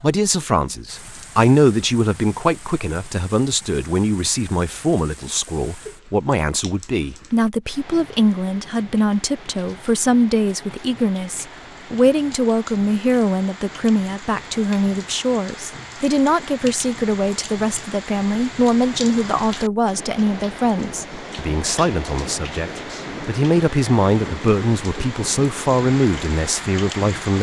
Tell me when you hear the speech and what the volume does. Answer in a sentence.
You can hear the speech from 0.0 to 27.3 s, at a steady volume.